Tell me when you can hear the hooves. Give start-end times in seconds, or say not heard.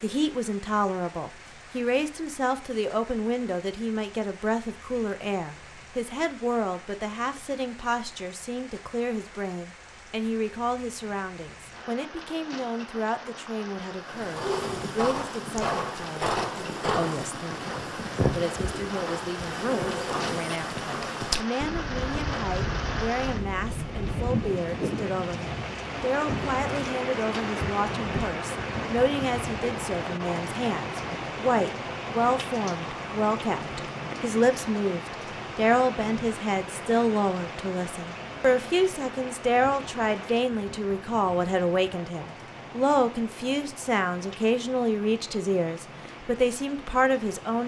14.0-24.4.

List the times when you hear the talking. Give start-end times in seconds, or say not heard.
0.0-47.6.